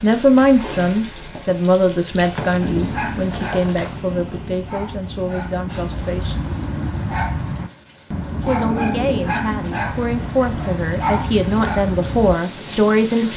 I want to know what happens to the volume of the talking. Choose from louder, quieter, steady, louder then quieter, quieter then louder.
quieter then louder.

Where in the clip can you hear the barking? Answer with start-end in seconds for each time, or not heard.
2.6-12.3.